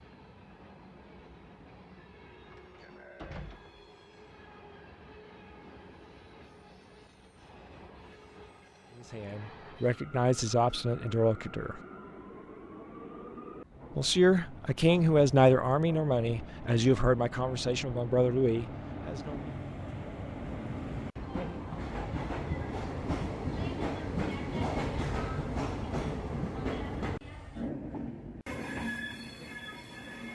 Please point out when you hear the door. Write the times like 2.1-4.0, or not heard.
2.4-3.9.